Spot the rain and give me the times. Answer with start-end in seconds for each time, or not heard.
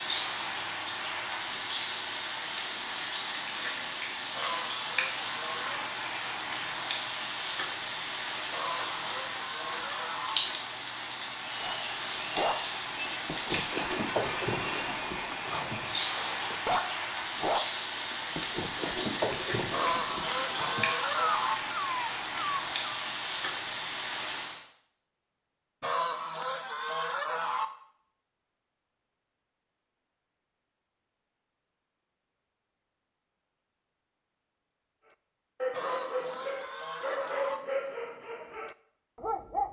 0.0-24.6.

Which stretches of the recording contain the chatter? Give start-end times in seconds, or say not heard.
not heard.